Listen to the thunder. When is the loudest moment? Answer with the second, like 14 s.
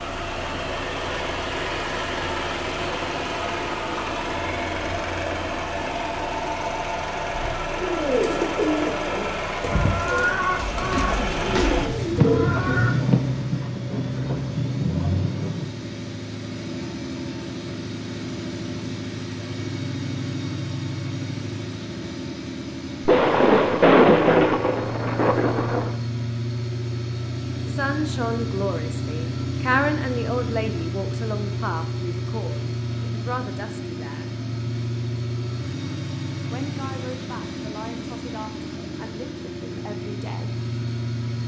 24 s.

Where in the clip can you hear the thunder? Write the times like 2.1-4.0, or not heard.
12.2-15.7, 23.1-25.9.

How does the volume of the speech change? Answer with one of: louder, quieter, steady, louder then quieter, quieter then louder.
quieter.